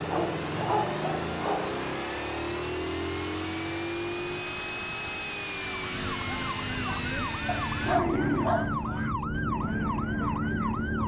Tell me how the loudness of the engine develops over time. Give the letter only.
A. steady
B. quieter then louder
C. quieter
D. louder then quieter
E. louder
C.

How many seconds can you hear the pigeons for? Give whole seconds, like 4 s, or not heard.
not heard.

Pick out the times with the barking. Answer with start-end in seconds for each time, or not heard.
0.0-1.8, 7.5-9.1.